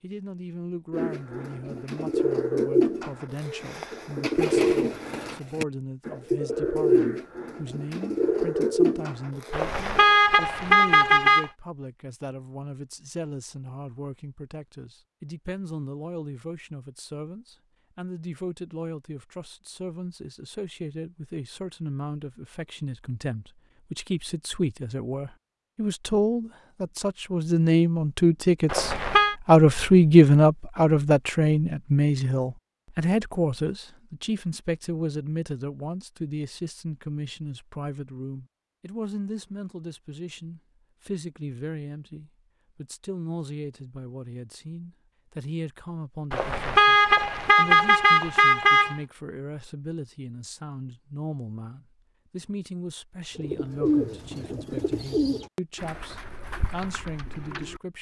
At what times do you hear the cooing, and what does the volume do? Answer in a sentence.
You can hear the cooing from 0.9 to 10.2 s, at a steady volume; and from 53.4 to 57.8 s, getting quieter.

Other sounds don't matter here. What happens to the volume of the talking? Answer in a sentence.
The loudness of the talking goes up, then down.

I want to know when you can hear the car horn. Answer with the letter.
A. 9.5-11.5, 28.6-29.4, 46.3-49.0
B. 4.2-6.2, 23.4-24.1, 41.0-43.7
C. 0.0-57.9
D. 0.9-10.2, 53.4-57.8
A.